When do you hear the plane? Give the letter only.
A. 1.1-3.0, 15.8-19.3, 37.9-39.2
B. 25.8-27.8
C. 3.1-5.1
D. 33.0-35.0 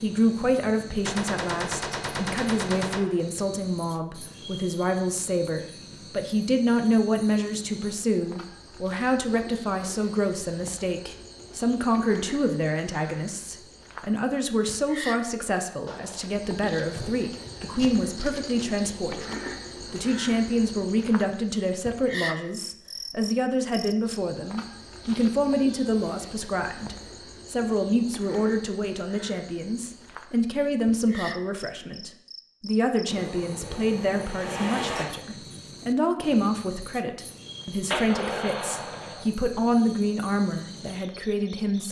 D.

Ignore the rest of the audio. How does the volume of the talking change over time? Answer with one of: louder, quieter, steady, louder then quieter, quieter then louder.
steady.